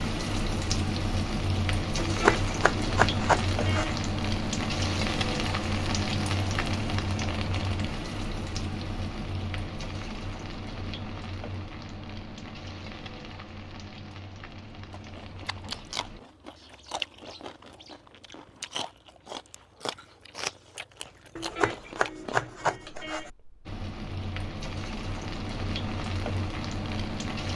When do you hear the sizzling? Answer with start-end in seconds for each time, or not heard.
0.0-16.2, 23.6-27.5.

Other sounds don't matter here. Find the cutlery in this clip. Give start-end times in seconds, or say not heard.
not heard.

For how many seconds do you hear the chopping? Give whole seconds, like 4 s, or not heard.
4 s.